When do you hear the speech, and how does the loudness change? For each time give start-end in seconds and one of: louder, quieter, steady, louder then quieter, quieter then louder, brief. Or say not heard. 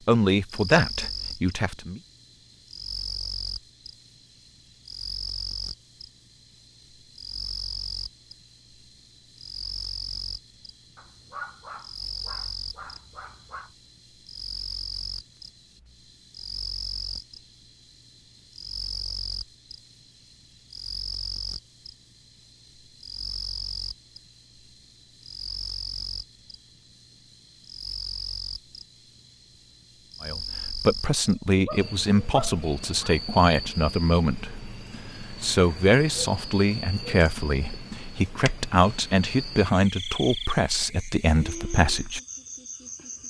0.1-2.0 brief
30.2-42.2 steady.